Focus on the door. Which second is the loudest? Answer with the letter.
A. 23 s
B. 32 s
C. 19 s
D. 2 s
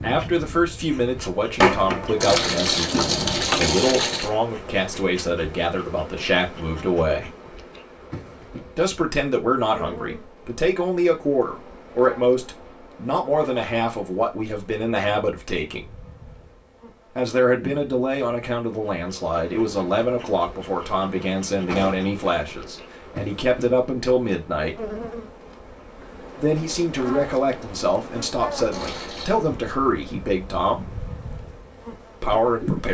D.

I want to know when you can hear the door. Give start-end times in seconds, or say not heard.
1.6-2.2, 21.6-22.1.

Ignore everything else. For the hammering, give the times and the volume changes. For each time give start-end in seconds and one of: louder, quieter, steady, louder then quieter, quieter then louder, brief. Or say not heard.
not heard.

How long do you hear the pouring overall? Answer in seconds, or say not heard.
3 s.